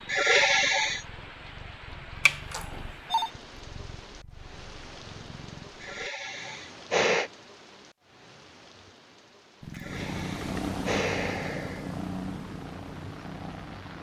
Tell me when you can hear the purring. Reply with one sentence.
The purring can be heard from 0.0 to 6.1 s and from 9.6 to 13.9 s.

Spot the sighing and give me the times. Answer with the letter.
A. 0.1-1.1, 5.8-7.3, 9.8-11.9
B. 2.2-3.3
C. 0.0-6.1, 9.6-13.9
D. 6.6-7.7
A.